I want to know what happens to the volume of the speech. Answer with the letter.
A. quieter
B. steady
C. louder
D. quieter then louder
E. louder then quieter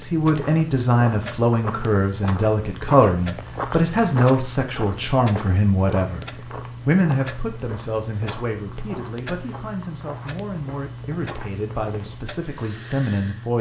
A.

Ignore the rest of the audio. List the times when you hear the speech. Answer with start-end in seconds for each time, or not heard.
0.0-13.5.